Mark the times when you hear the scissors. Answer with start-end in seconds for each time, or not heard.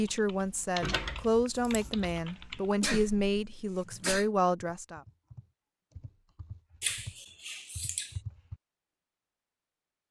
0.8-2.1, 6.8-8.2.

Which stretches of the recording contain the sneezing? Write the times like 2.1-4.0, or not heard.
2.8-4.2.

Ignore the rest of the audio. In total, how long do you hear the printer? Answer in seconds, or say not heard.
not heard.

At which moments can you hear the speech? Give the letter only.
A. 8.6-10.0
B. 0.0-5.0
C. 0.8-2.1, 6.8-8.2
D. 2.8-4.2
B.